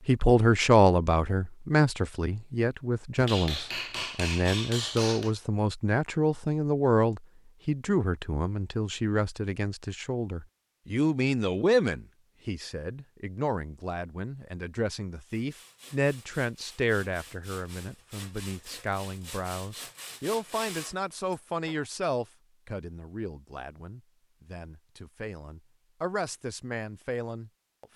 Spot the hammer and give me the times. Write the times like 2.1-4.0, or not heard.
3.1-5.3.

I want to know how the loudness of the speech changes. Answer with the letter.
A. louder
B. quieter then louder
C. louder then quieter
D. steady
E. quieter
E.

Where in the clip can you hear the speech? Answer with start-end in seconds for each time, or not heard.
0.1-27.9.